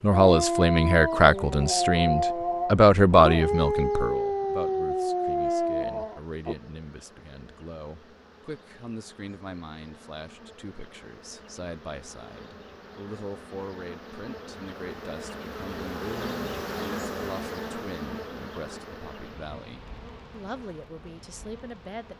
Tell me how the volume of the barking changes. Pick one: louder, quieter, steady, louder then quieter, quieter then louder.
steady.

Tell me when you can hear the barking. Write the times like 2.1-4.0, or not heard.
0.1-6.5.